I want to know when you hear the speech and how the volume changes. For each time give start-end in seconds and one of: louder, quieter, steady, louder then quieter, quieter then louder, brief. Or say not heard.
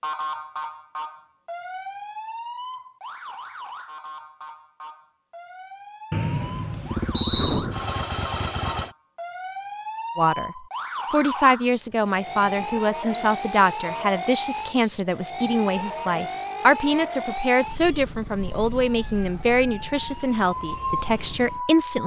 10.2-22.0 steady.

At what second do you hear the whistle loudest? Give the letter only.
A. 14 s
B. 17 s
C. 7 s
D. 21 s
C.